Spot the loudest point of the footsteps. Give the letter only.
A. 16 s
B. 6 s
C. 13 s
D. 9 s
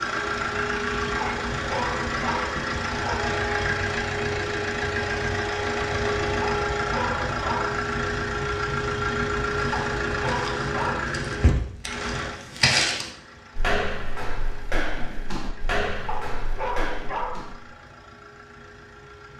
C.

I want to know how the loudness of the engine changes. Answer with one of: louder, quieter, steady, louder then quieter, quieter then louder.
quieter.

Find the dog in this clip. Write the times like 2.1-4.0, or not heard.
1.2-3.2, 6.4-7.8, 9.7-11.2, 16.1-17.5.